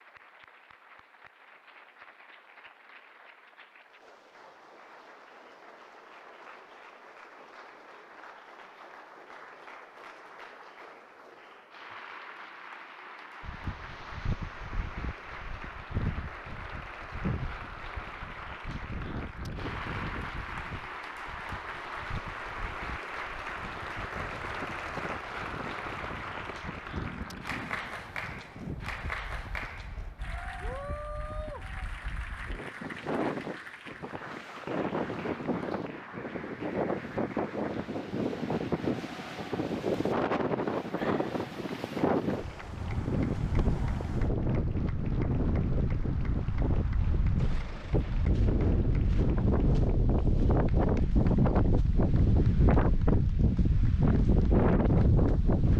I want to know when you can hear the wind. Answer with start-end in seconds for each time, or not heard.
13.4-55.7.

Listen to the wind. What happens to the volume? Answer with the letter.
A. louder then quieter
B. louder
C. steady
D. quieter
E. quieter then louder
B.